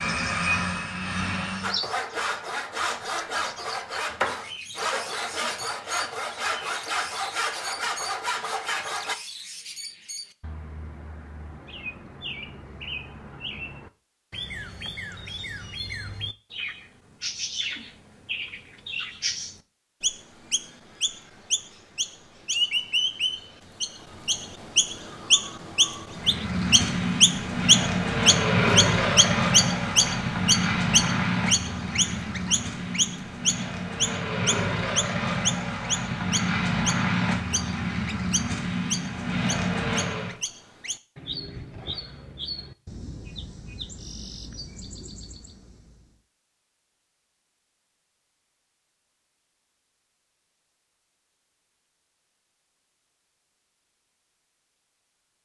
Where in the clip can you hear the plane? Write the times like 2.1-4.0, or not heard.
0.0-1.8, 26.1-40.4.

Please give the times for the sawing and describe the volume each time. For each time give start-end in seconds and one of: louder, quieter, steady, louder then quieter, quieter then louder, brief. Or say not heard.
1.6-9.2 steady.